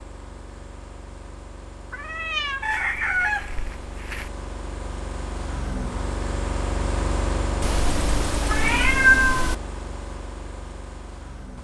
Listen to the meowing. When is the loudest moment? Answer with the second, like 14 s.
9 s.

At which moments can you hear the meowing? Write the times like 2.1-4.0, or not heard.
1.9-2.7, 7.6-9.6.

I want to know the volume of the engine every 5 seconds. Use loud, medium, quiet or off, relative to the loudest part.
medium, loud, medium.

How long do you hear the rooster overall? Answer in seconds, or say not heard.
2 s.